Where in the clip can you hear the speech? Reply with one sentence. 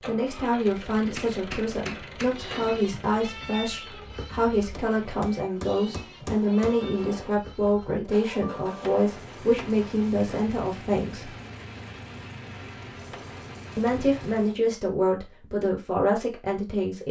The speech can be heard from 0.1 to 11.3 s and from 13.8 to 17.0 s.